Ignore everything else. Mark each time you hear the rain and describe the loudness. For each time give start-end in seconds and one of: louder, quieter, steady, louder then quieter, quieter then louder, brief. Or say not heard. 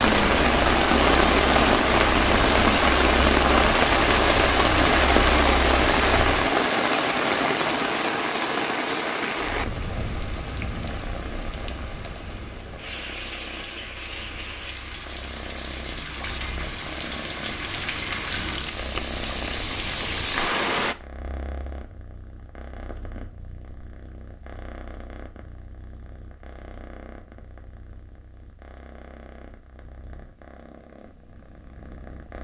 0.0-20.9 quieter then louder.